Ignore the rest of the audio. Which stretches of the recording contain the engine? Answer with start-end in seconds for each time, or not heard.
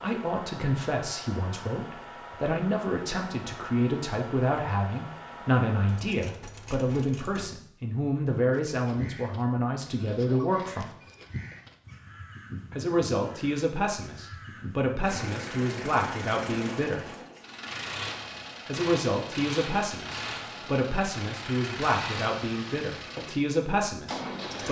0.0-7.5, 15.0-24.6.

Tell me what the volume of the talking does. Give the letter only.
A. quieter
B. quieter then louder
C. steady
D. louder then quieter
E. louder
C.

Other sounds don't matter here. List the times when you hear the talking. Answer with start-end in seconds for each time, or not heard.
0.0-10.9, 12.7-17.1, 18.6-24.6.